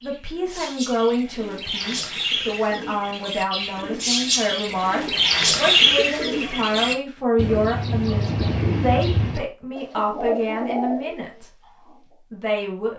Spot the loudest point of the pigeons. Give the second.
6 s.